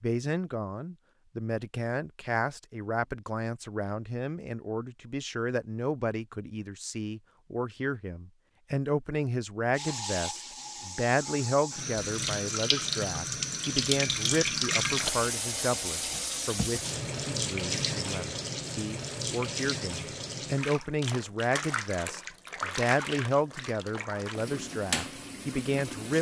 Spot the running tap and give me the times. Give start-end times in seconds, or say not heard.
9.8-26.1.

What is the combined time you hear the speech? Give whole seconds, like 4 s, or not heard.
26 s.